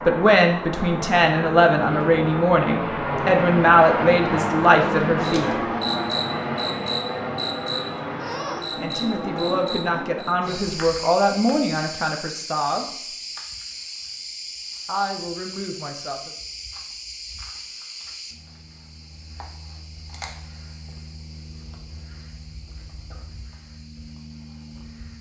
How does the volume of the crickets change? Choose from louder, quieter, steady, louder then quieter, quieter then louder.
quieter.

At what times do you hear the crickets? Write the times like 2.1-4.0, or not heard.
5.2-25.1.